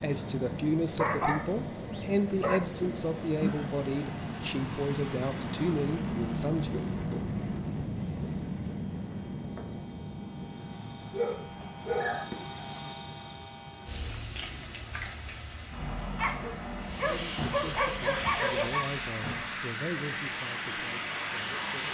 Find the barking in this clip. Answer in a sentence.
The barking can be heard from 0.9 to 2.6 s, from 11.1 to 12.3 s and from 16.1 to 18.9 s.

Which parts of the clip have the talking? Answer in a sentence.
The talking can be heard from 0.0 to 6.7 s and from 17.0 to 21.9 s.